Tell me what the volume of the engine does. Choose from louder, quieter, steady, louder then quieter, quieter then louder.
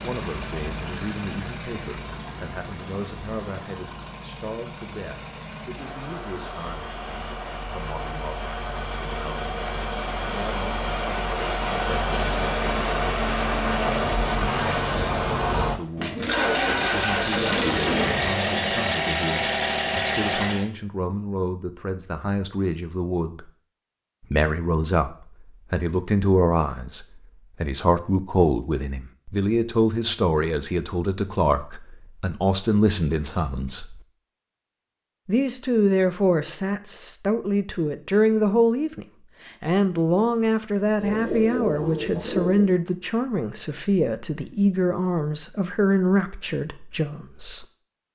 louder.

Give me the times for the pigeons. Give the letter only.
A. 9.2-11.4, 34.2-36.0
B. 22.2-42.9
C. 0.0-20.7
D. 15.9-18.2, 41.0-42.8
D.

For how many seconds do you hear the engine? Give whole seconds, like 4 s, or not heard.
21 s.